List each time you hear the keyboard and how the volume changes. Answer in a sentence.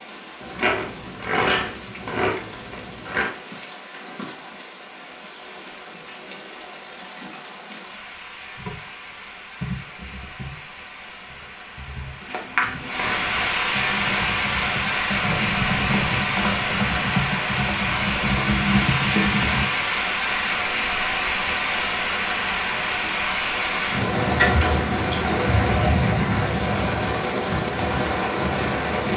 You can hear the keyboard from 8.6 to 19.7 s, getting quieter then louder.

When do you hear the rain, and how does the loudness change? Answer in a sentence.
You can hear the rain from 0.0 to 29.1 s, getting louder.